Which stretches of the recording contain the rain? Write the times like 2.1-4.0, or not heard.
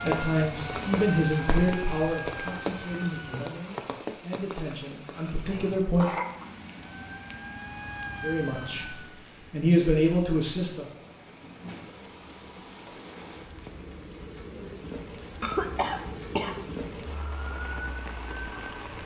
0.0-19.0.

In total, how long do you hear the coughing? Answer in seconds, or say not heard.
2 s.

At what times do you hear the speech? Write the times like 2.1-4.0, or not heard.
0.0-6.2, 8.2-10.9.